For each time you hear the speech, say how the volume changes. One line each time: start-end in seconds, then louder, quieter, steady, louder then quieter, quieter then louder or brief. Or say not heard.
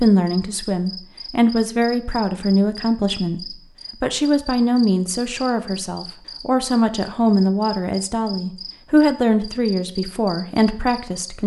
0.0-11.4 steady.